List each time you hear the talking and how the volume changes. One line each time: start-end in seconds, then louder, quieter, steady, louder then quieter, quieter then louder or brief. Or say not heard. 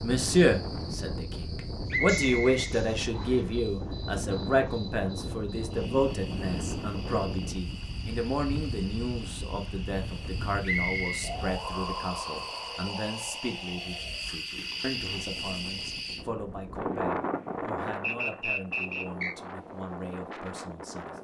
0.0-21.1 quieter.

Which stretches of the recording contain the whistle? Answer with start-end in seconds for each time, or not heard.
1.9-3.5, 10.7-11.3, 18.0-19.4.